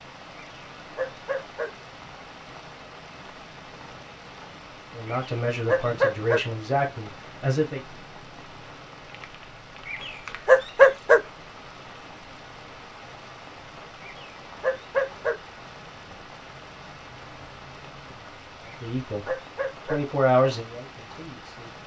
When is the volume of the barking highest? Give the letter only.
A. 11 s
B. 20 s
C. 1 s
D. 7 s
A.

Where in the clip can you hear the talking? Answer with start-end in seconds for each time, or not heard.
4.9-7.8, 18.8-21.8.